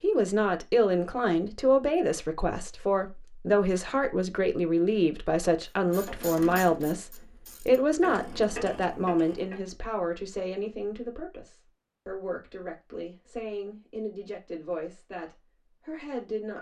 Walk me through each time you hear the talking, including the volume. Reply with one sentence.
You can hear the talking from 0.0 to 16.5 s, getting quieter.